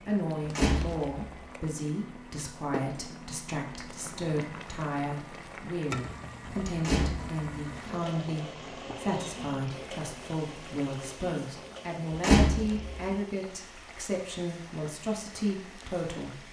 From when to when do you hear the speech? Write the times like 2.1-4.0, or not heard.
0.1-16.4.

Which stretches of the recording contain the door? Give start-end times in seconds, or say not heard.
0.5-1.2, 6.8-7.3, 12.2-12.9.